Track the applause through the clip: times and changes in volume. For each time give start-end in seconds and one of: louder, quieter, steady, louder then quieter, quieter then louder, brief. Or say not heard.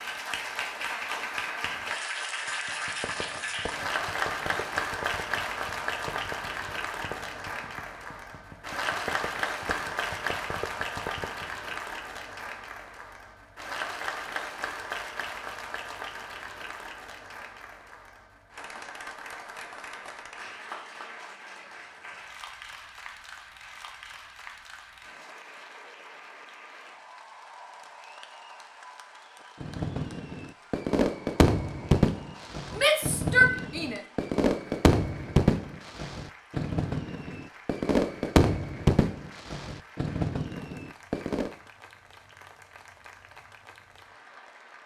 0.0-44.8 quieter.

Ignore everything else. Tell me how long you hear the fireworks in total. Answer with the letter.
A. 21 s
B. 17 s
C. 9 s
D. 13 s
A.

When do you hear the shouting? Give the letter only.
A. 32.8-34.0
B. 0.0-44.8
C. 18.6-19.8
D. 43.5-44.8
A.